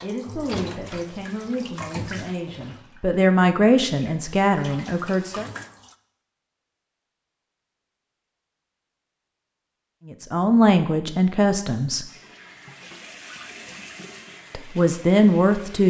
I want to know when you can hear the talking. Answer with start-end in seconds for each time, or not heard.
0.0-5.5, 10.1-12.1, 14.5-15.8.